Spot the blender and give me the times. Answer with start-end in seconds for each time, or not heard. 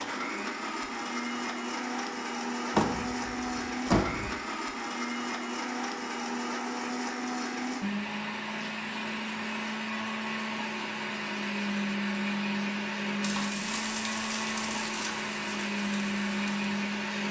0.0-17.2.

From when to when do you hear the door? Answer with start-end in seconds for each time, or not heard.
2.7-4.3.